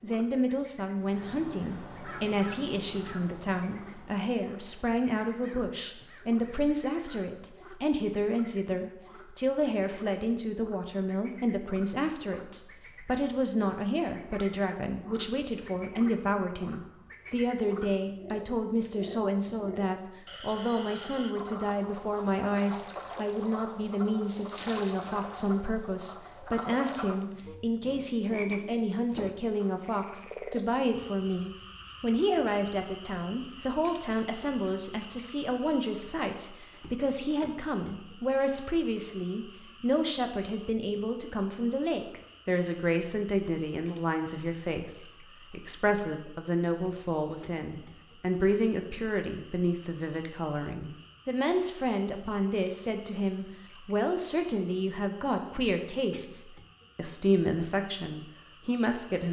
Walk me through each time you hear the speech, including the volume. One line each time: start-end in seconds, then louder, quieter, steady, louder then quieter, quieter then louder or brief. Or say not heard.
0.0-59.2 steady.